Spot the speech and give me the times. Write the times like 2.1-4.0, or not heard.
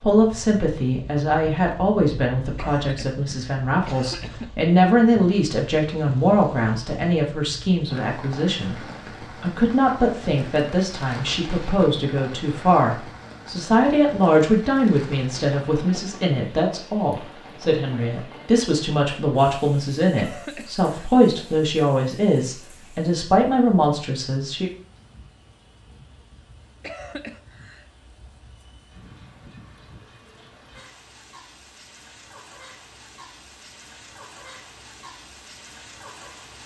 0.0-8.8, 9.4-24.7.